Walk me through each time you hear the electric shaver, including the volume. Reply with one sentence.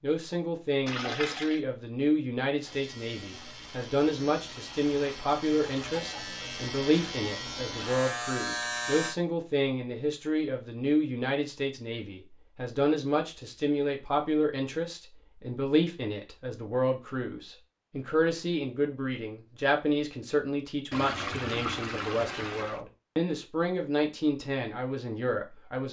You can hear the electric shaver from 2.6 to 9.2 s, getting louder.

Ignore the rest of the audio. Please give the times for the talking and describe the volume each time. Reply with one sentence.
The talking can be heard from 0.0 to 25.8 s, at a steady volume.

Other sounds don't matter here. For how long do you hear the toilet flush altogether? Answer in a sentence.
The toilet flush can be heard for 3 seconds in total.